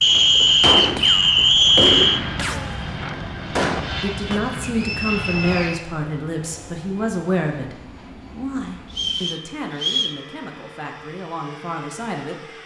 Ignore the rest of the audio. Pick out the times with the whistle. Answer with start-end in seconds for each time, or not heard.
0.0-2.2, 4.6-5.8, 8.9-10.2.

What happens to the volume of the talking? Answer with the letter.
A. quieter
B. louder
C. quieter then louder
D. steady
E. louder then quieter
A.